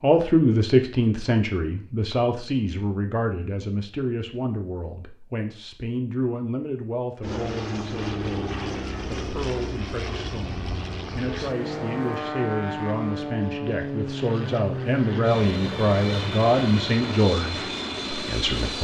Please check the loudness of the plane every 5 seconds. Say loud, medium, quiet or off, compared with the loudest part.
off, loud, loud, loud.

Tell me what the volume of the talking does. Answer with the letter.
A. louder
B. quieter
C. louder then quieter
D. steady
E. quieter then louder
E.